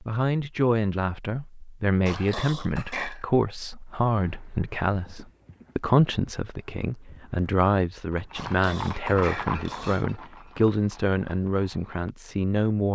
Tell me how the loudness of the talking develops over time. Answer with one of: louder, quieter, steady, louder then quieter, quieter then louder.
steady.